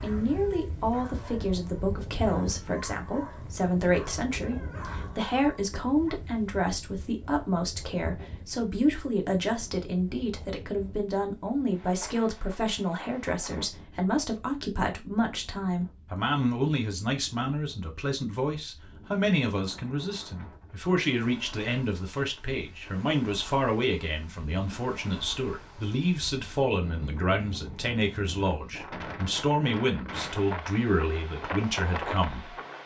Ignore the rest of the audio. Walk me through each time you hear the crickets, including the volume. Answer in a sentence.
You can't hear the crickets here.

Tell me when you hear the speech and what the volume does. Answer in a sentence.
You can hear the speech from 0.0 to 32.8 s, at a steady volume.